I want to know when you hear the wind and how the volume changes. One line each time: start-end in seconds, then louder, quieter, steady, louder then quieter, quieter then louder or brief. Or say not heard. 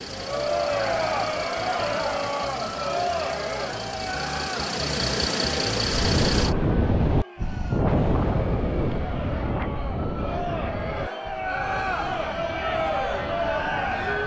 5.9-14.2 quieter.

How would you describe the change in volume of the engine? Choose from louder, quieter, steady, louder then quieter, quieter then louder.
louder.